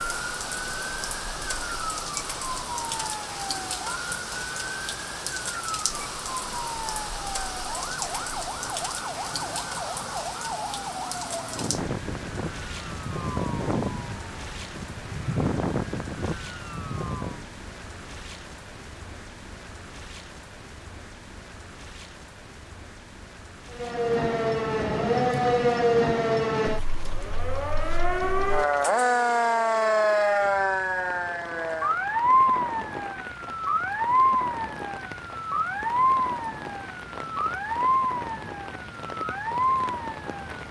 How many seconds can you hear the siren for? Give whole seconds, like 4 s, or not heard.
34 s.